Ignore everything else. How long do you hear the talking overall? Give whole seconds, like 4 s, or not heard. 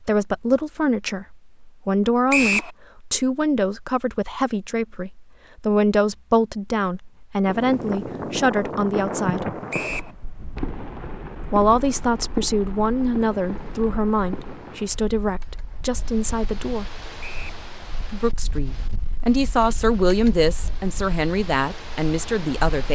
20 s.